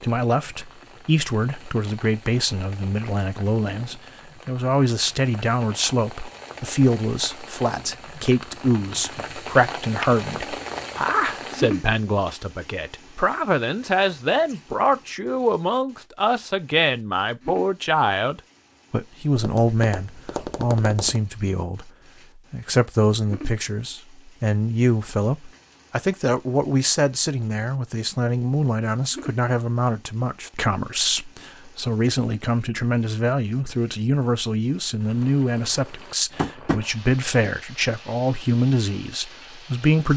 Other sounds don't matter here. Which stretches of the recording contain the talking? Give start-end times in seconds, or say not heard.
0.0-40.1.